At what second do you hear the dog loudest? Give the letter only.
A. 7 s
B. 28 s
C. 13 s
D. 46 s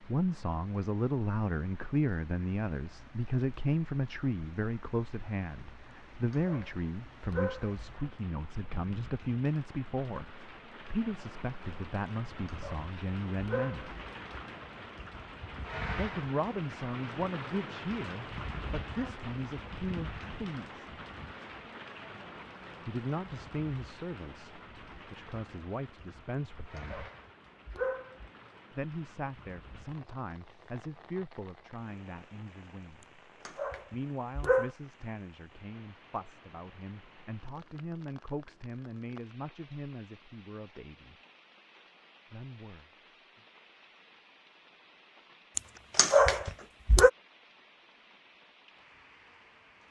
D.